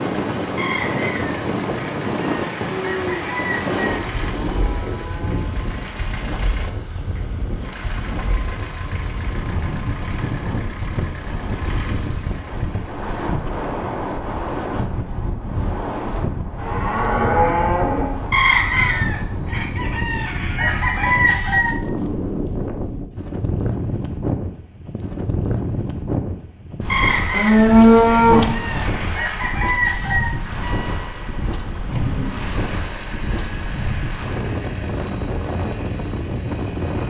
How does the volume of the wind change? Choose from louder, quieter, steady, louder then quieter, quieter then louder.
steady.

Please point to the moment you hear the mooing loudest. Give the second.
28 s.